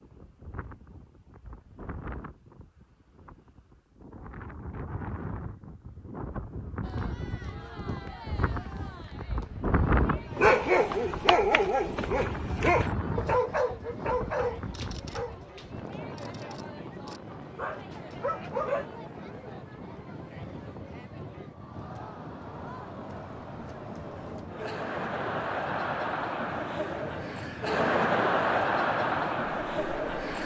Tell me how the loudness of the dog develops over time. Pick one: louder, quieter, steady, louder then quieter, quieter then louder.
quieter then louder.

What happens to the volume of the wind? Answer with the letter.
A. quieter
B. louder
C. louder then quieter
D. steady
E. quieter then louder
C.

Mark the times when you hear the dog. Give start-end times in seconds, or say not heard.
10.3-18.9.